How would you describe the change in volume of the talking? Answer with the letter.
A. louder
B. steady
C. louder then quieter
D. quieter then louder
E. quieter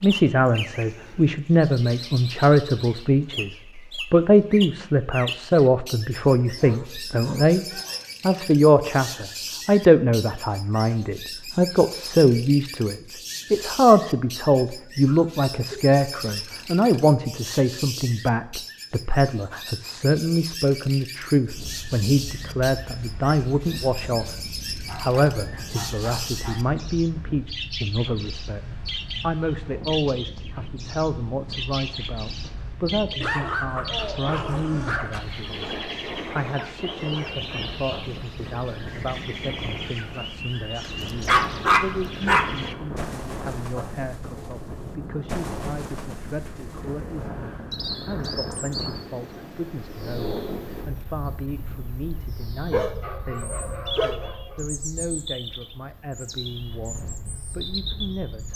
E.